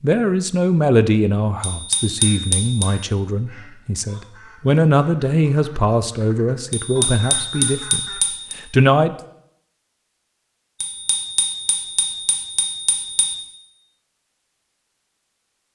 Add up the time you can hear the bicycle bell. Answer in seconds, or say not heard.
6 s.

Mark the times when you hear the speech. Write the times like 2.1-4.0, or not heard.
0.0-9.2.